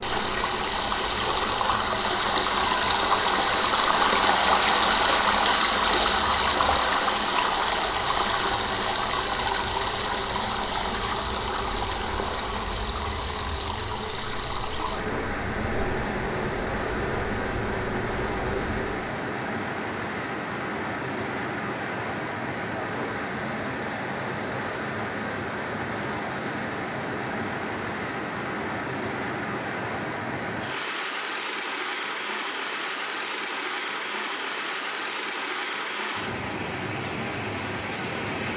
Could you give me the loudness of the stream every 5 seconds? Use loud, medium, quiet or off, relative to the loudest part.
loud, loud, medium, medium, medium, medium, medium, medium.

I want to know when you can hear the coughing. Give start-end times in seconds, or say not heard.
not heard.